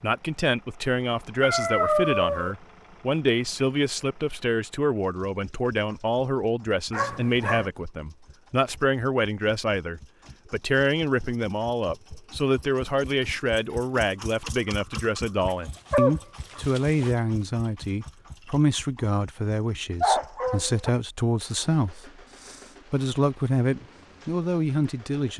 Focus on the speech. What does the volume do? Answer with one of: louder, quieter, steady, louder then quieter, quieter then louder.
steady.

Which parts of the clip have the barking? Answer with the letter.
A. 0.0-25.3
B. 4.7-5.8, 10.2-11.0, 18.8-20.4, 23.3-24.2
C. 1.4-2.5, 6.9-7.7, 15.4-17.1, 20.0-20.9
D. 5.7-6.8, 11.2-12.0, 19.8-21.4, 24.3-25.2
C.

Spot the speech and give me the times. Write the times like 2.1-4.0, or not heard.
0.0-25.3.